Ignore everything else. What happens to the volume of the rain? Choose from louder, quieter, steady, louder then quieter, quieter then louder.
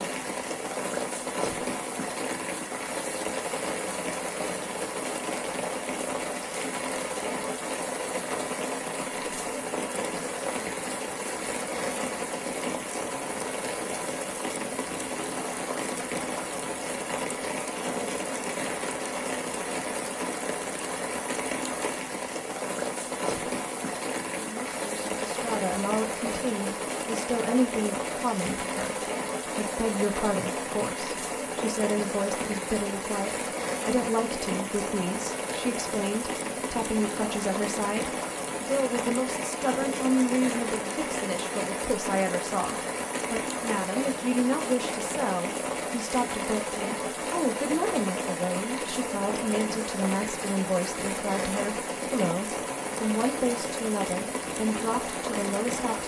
steady.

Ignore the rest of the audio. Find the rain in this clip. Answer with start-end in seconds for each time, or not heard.
0.0-56.0.